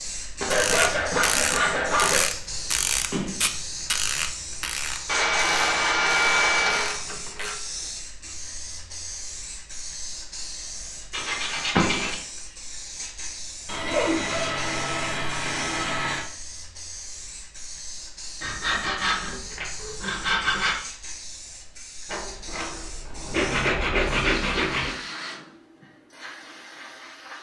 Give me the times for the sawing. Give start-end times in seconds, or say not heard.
0.4-2.2, 5.0-7.0, 11.1-12.2, 13.7-16.2, 18.4-20.8, 23.3-24.9.